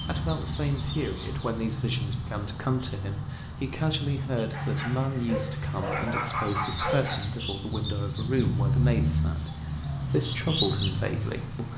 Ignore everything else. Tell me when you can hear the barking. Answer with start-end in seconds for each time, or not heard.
4.5-7.4.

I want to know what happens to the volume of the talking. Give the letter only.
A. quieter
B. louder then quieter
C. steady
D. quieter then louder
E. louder
C.